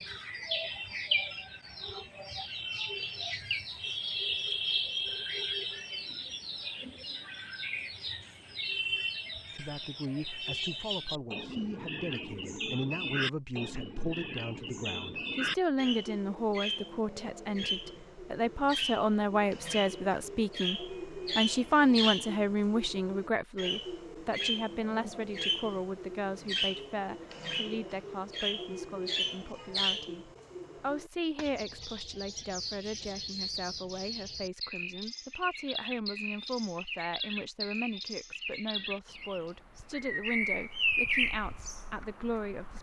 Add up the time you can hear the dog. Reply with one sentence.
The dog can't be heard in this clip.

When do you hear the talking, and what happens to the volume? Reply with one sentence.
The talking can be heard from 9.5 to 42.7 s, getting louder then quieter.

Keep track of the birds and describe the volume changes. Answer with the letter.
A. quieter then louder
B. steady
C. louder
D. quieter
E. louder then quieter
B.